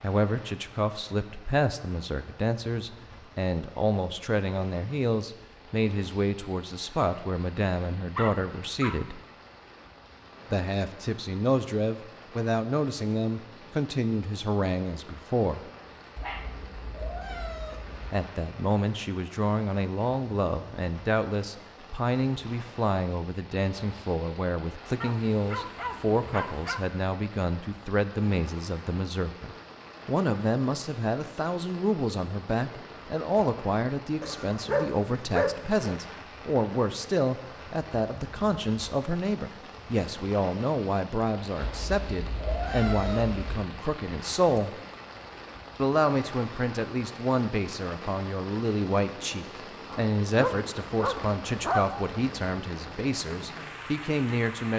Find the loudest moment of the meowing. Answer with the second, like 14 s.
43 s.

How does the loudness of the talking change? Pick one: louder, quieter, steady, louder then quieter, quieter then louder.
steady.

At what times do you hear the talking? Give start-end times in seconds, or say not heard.
0.0-9.2, 10.5-15.7, 18.1-44.8, 45.8-54.7.